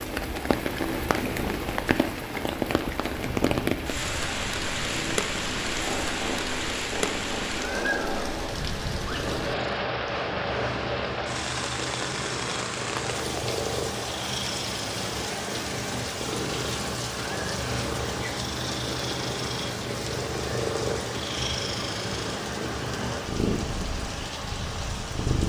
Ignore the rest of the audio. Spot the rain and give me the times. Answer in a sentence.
You can hear the rain from 0.0 to 25.4 s.